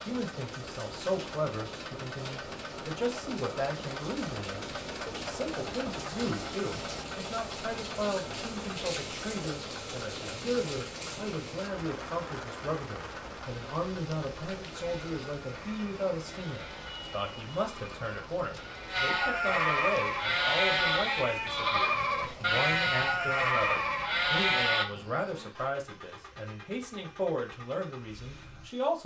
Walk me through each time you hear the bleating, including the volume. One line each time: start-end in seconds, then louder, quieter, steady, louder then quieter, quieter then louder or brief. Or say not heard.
14.8-24.9 louder.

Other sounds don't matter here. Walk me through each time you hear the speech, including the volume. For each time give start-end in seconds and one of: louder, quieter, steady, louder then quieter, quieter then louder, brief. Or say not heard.
0.0-29.0 steady.